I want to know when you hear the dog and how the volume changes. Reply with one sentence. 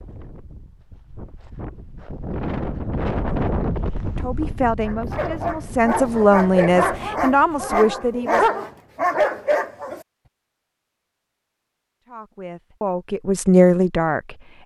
The dog can be heard from 4.8 to 10.0 s, getting louder.